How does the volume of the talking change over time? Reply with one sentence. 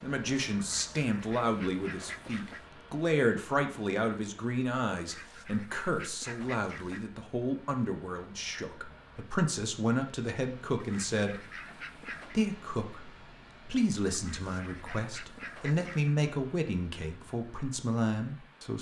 The volume of the talking stays about the same.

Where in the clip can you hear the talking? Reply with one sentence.
You can hear the talking from 0.0 to 11.4 s and from 12.3 to 18.7 s.